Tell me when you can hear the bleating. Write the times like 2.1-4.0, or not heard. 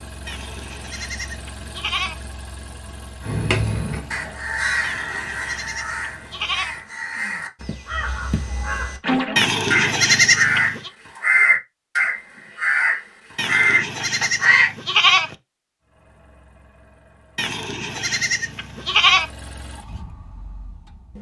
0.2-2.2, 4.8-6.8, 9.3-10.9, 13.3-15.3, 17.4-19.2.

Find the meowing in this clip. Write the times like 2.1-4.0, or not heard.
3.5-4.3.